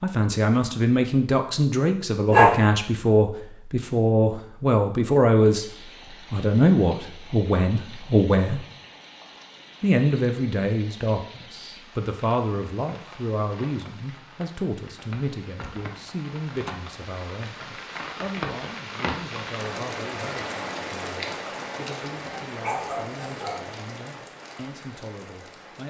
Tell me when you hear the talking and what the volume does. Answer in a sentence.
The talking can be heard from 0.0 to 5.7 s, at a steady volume; briefly from 6.3 to 8.7 s; and from 9.8 to 25.8 s, getting quieter.